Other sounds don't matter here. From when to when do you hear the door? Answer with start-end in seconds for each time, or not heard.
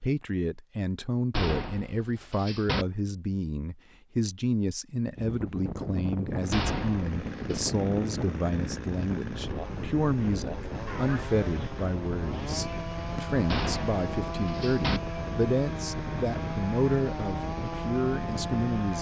1.3-2.9, 6.5-7.6, 13.4-15.0.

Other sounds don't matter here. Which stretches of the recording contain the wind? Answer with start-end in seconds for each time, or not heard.
5.2-18.9.